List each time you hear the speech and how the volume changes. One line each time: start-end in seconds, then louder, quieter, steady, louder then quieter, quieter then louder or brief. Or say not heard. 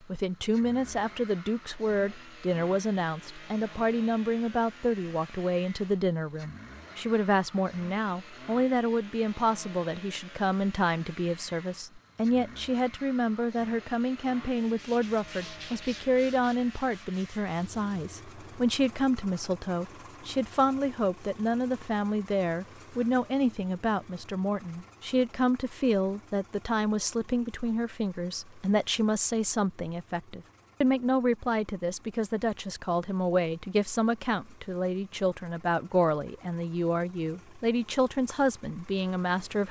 0.1-39.6 steady.